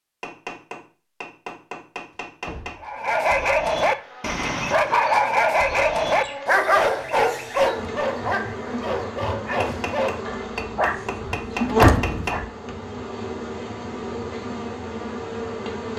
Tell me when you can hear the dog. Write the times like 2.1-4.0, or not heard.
2.8-12.4.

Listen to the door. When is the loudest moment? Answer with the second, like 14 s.
12 s.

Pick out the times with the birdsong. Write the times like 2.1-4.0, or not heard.
not heard.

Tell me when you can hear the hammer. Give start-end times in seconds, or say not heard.
0.2-2.8, 9.6-12.4.